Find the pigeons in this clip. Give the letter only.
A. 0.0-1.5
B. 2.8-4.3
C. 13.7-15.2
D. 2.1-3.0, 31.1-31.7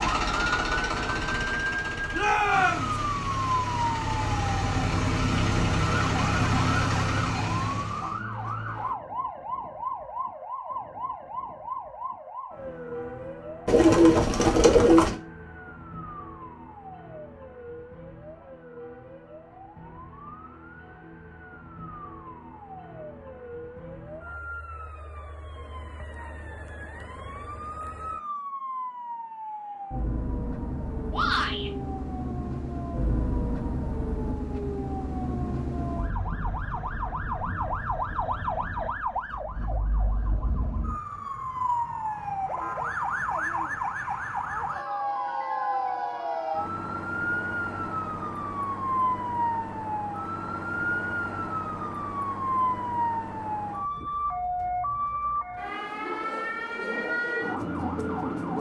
C.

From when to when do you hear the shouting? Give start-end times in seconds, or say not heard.
2.1-3.0, 31.1-31.7.